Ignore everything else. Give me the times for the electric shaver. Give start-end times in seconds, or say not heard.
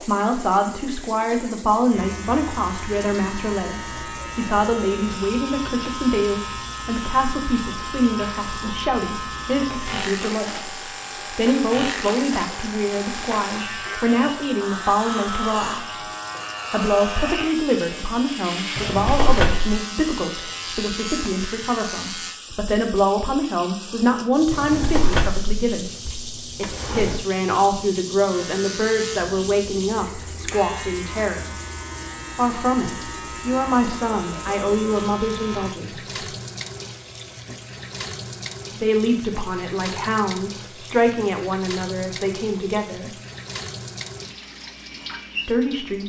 1.9-22.4, 28.3-35.8.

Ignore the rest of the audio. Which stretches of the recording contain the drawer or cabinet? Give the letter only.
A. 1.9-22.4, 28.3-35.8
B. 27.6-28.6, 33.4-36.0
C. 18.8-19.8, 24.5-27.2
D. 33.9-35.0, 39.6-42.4
C.